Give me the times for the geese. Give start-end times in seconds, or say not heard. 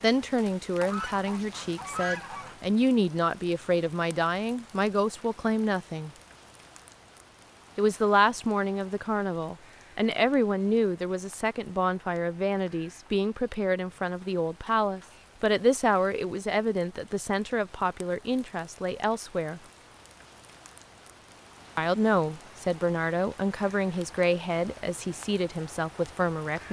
0.8-2.8.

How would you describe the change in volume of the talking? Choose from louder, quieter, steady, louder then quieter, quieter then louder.
steady.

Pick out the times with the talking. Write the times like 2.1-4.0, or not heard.
0.0-6.1, 7.8-19.6, 21.8-26.6.